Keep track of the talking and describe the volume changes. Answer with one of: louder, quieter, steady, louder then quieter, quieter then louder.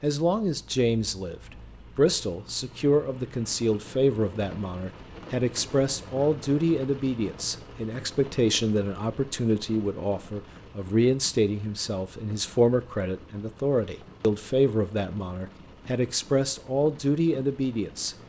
steady.